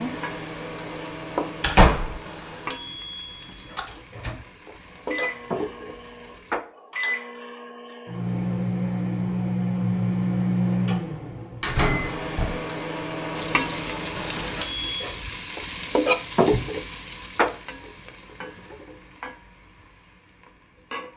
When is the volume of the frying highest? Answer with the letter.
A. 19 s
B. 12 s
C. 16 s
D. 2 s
C.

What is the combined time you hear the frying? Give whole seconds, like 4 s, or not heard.
14 s.